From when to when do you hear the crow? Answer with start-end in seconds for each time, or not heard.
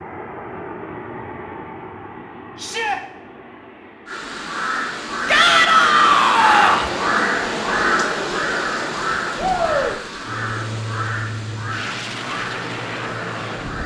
4.0-13.8.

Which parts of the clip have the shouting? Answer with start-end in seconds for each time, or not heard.
2.5-3.0, 5.2-6.9, 9.3-9.9.